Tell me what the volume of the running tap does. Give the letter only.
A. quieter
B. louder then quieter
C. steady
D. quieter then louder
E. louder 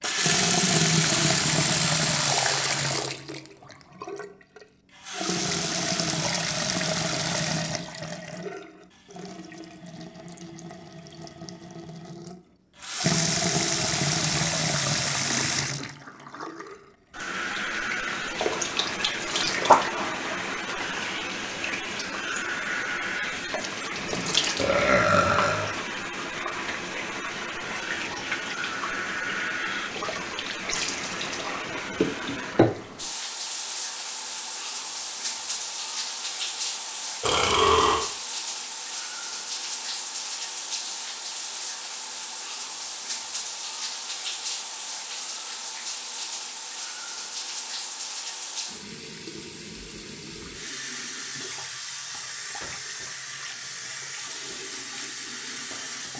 A.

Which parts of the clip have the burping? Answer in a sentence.
You can hear the burping from 24.6 to 25.7 s and from 37.2 to 38.0 s.